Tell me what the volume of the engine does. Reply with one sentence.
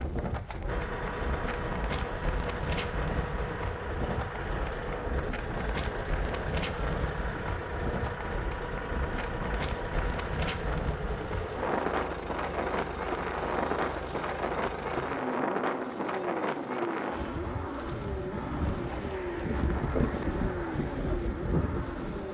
The loudness of the engine stays about the same.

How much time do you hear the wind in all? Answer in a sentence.
The wind can be heard for 22 seconds in total.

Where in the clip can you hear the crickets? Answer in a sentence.
You can't hear the crickets here.